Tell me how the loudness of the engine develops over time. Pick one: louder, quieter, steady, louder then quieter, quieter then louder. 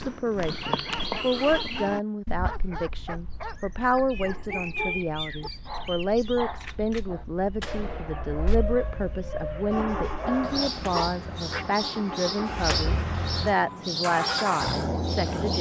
louder.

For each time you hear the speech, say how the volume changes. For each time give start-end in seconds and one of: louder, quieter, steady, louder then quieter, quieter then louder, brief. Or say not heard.
0.0-15.5 steady.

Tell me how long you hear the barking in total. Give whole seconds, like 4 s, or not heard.
11 s.